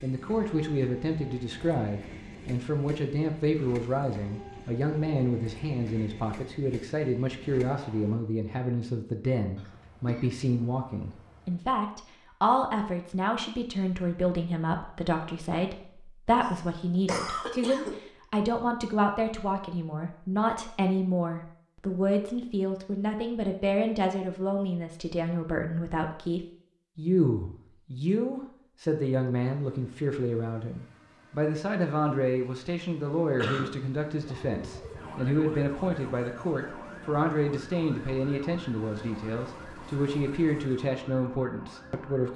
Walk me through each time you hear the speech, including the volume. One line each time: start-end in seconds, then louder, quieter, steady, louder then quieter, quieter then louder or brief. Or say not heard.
0.0-42.3 steady.